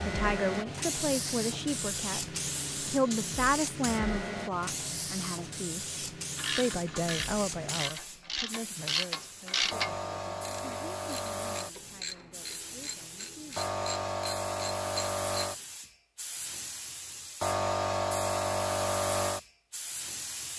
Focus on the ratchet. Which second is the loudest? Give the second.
10 s.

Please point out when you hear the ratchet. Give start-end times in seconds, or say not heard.
6.3-15.6.